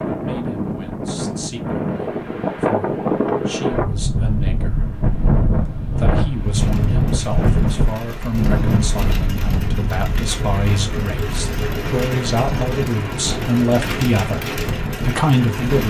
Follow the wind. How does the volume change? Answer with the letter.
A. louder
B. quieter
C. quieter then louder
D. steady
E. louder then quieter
B.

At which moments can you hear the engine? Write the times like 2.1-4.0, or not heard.
6.5-15.8.